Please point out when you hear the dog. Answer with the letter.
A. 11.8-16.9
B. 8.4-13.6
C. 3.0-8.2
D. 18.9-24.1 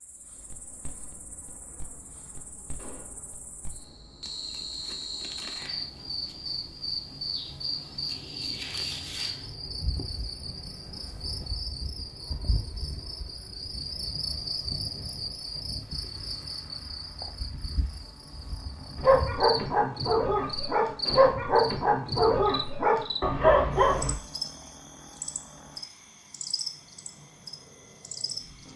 D.